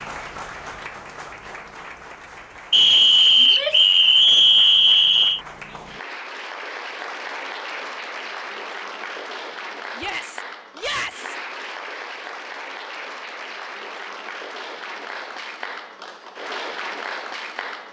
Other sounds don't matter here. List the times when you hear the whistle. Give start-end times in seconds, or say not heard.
2.7-5.4.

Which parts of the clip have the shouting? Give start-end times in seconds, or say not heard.
3.4-3.9, 9.9-11.3.